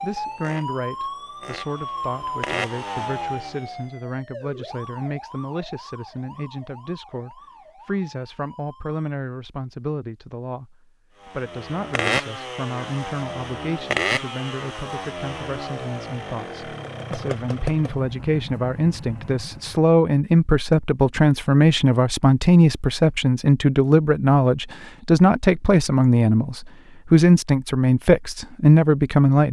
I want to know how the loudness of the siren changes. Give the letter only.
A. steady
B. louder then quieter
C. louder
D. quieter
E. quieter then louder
D.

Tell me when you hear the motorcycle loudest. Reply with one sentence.
The volume of the motorcycle peaks at 14 seconds.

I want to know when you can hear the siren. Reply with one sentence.
The siren can be heard from 0.0 to 9.1 s.